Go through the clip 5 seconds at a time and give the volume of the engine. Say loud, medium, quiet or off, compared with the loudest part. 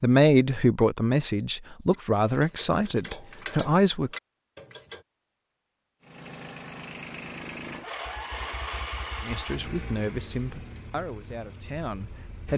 off, loud, medium.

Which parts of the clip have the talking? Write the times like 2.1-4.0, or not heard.
0.0-4.1, 9.2-12.5.